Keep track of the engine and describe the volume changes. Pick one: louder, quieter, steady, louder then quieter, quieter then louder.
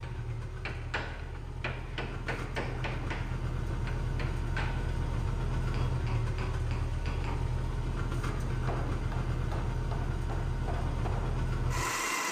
louder.